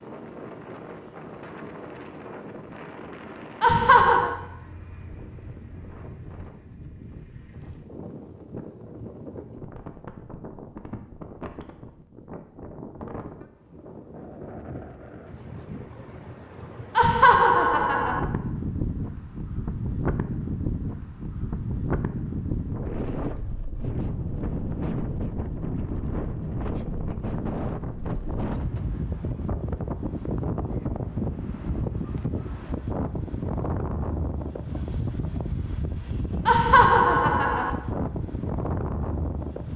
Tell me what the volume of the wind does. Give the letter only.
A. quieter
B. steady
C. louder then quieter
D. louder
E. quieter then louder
D.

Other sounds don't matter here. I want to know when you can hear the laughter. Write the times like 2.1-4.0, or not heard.
3.6-4.3, 16.9-18.2, 36.5-37.7.